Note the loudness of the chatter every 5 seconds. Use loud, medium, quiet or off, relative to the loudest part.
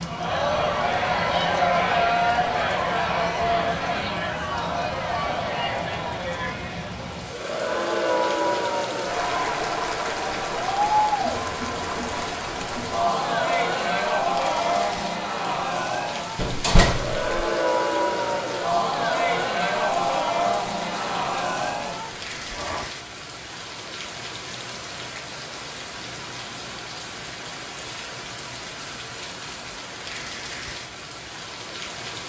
loud, loud, loud, loud, loud, off, off.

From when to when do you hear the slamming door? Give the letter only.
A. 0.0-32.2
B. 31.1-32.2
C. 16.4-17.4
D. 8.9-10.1
C.